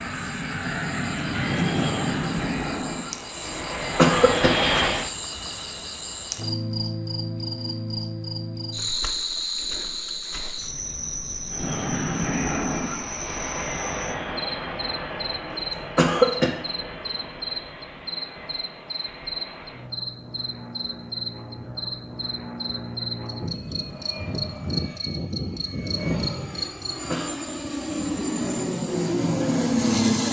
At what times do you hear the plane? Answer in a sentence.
The plane can be heard from 0.0 to 5.1 s and from 11.4 to 30.2 s.